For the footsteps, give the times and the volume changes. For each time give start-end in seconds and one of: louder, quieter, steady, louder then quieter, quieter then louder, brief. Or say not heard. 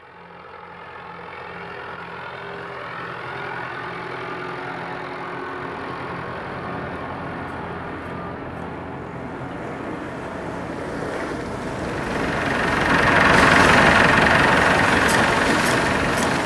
not heard.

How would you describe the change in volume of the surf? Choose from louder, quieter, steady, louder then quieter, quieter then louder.
louder.